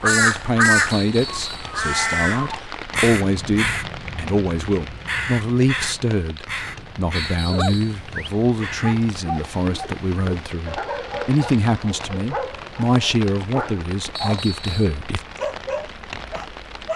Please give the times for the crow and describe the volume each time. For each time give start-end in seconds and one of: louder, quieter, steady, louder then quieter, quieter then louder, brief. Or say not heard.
0.0-9.1 quieter.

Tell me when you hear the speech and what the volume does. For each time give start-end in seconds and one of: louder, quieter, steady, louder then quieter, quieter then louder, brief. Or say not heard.
0.0-15.2 steady.